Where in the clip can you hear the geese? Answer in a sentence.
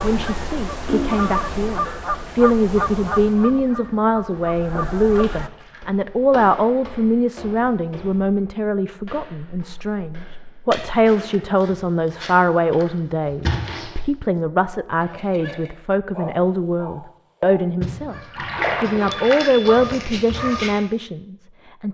You can hear the geese from 0.0 to 5.5 s.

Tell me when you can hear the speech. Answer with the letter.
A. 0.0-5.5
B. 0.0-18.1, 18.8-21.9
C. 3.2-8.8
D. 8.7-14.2
B.